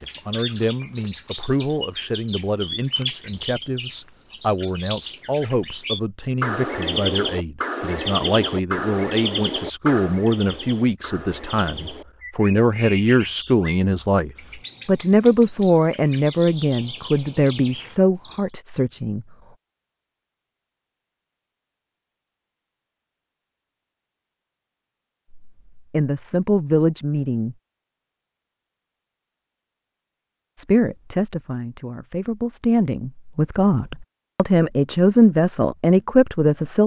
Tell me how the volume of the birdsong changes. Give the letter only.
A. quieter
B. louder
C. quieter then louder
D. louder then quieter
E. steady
A.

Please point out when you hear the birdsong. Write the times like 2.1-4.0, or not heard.
0.0-18.5.